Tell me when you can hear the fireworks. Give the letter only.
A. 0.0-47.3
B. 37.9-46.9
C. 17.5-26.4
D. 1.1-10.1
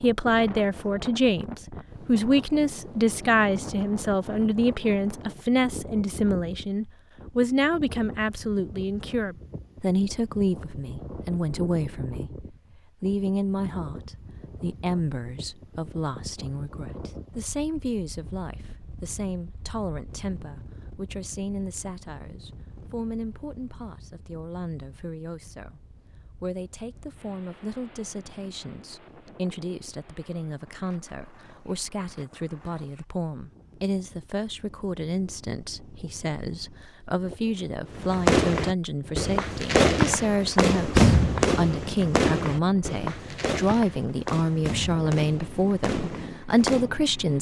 B.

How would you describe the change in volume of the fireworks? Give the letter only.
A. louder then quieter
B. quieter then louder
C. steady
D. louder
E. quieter
E.